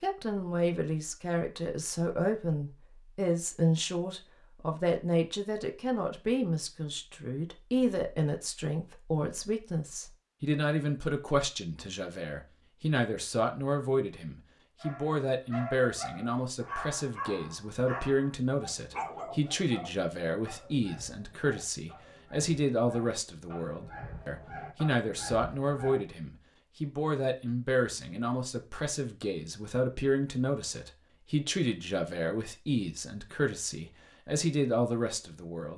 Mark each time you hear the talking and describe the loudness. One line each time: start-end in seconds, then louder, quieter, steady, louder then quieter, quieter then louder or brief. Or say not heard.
0.0-35.7 steady.